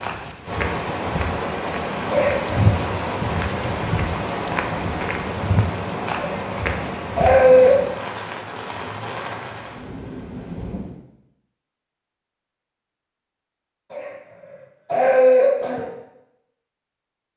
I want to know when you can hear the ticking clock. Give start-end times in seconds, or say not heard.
not heard.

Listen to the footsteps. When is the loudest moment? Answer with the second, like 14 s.
3 s.